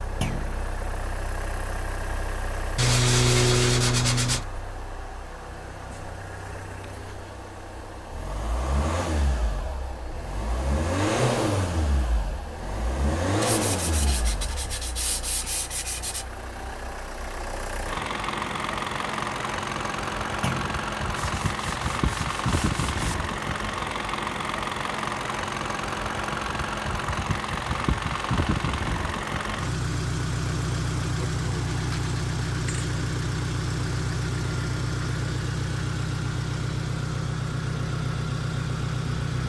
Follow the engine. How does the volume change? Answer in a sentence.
The loudness of the engine goes up.